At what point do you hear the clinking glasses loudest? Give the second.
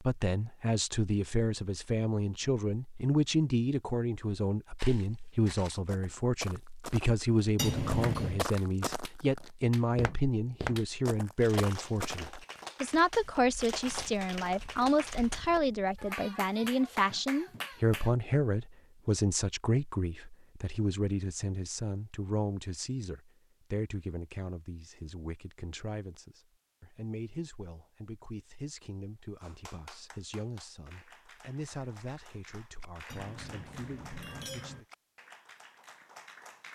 8 s.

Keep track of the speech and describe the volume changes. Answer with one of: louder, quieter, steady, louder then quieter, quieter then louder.
quieter.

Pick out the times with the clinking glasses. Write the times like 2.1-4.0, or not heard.
7.5-8.4, 33.1-34.8.